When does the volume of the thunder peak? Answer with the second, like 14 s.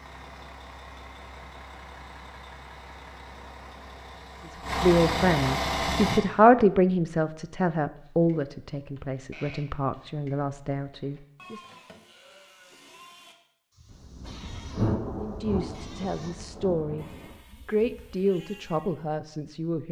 15 s.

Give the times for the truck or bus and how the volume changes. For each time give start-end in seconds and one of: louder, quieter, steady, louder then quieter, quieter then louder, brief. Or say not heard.
0.0-6.2 louder.